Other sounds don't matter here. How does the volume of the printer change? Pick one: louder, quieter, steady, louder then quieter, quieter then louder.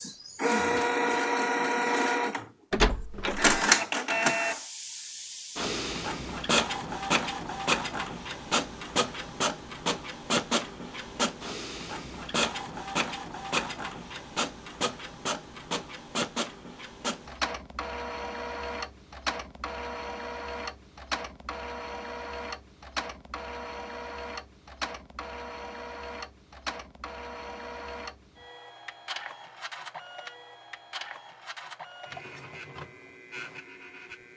quieter.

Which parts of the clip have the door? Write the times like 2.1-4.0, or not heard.
2.7-3.6.